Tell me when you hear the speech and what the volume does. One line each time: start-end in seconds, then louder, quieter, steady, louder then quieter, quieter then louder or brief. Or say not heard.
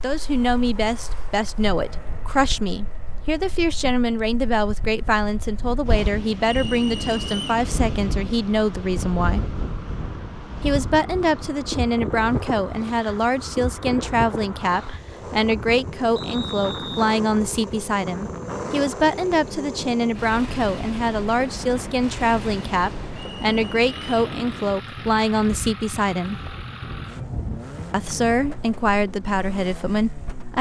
0.0-9.6 steady
10.6-26.4 steady
27.9-30.5 brief.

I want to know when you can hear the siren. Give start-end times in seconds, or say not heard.
not heard.